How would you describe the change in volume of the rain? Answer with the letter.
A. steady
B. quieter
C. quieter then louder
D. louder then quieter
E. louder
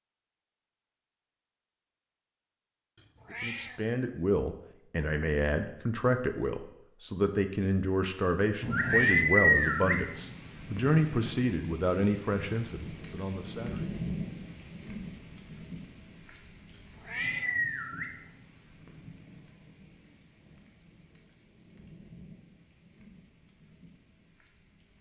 B.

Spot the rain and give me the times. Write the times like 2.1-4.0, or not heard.
8.6-24.9.